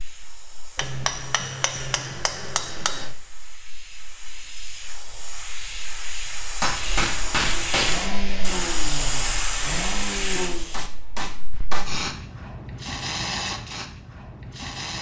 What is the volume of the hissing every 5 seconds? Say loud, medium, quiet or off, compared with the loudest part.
quiet, loud, loud.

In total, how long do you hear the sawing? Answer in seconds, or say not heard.
not heard.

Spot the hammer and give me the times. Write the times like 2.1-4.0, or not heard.
0.8-3.0, 6.6-8.1, 10.7-11.9.